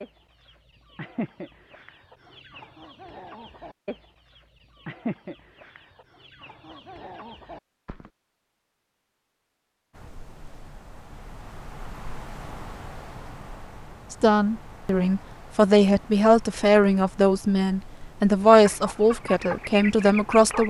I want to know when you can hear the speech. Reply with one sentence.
You can hear the speech from 14.1 to 20.6 s.